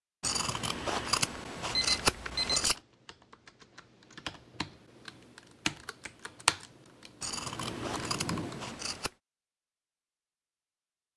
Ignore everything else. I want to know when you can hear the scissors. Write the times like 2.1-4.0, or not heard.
0.2-2.8, 7.2-9.1.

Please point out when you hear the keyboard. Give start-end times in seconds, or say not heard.
2.0-8.8.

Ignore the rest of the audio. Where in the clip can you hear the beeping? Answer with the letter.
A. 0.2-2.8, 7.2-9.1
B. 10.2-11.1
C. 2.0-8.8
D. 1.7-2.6
D.